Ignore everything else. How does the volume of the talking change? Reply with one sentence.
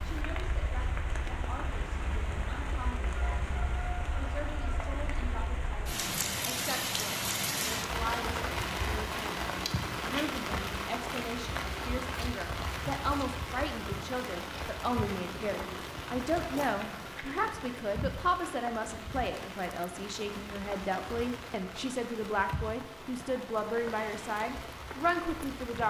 The volume of the talking goes up.